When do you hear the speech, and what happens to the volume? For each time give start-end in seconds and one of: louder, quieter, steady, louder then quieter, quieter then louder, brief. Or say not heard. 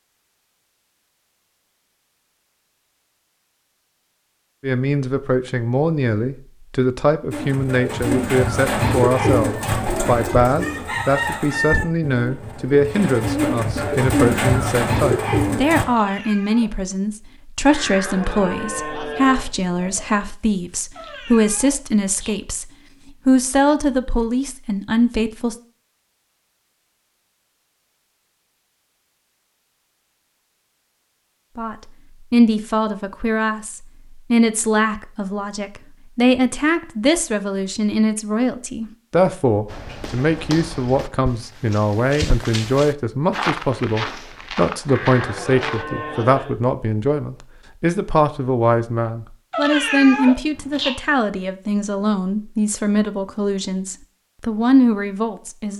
4.6-22.6 steady
23.2-25.6 brief
31.6-55.7 steady.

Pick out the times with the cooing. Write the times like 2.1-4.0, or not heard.
7.3-15.8.